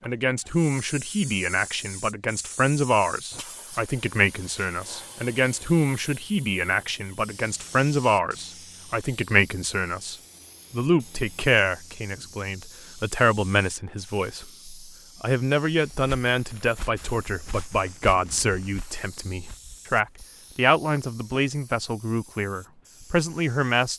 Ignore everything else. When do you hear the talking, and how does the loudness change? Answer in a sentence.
You can hear the talking from 0.1 to 23.9 s, at a steady volume.